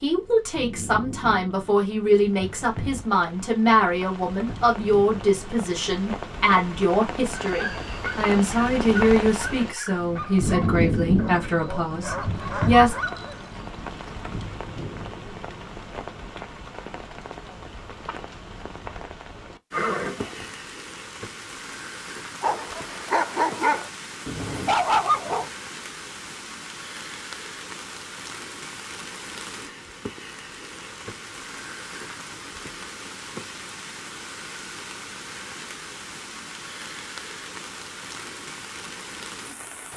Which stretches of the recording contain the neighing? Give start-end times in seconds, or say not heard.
19.7-20.5.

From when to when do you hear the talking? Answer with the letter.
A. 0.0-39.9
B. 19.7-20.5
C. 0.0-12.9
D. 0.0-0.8
C.